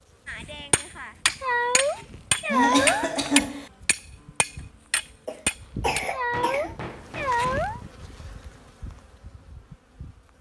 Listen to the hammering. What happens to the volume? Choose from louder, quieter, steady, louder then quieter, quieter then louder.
louder then quieter.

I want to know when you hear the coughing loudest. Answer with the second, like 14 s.
3 s.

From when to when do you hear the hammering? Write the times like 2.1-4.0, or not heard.
0.2-7.6.